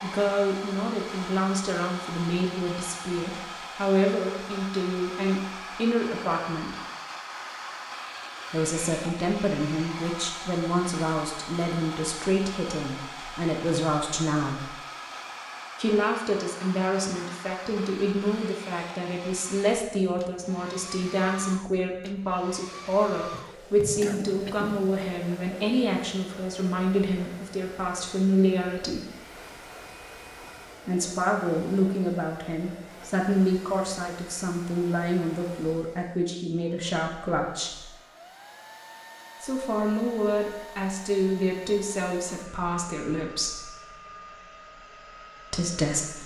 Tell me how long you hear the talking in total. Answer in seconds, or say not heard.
38 s.